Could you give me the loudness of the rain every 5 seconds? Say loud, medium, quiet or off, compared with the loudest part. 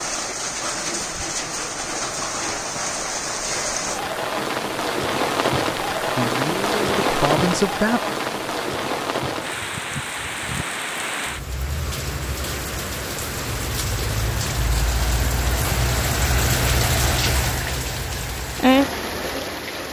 loud, loud, medium, loud.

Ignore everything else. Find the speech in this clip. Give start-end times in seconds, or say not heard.
6.2-8.0.